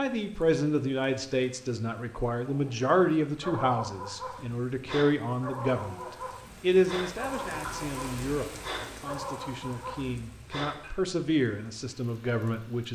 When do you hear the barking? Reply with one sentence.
The barking can be heard from 2.5 to 10.9 s.